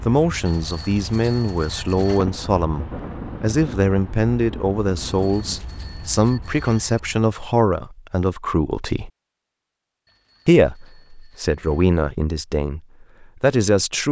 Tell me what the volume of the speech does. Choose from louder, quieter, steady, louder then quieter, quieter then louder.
steady.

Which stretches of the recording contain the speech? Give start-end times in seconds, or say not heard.
0.1-9.1, 10.4-14.0.